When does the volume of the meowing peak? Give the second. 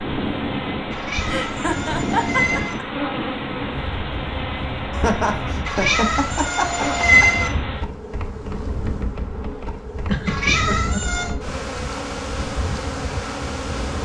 7 s.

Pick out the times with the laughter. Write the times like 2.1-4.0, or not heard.
1.2-2.8, 4.9-7.3, 10.1-11.0.